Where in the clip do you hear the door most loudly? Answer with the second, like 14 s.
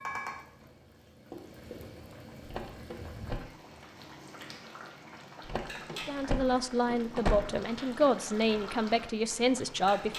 7 s.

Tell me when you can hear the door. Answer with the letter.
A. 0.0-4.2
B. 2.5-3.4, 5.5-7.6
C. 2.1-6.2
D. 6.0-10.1
B.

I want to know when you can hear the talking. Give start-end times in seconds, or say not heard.
6.0-10.1.